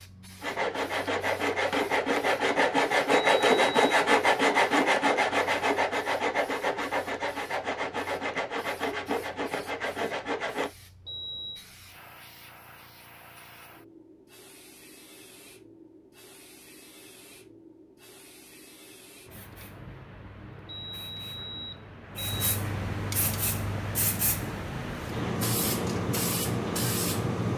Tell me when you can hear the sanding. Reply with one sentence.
You can hear the sanding from 0.4 to 10.8 s.